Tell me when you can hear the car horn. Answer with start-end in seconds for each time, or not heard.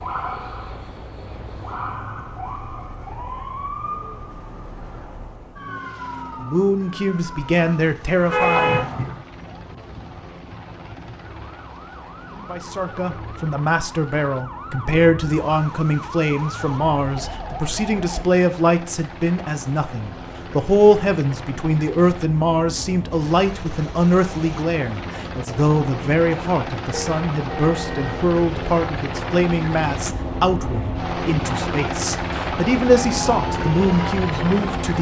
8.2-9.2, 26.9-28.2.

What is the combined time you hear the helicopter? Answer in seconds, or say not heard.
35 s.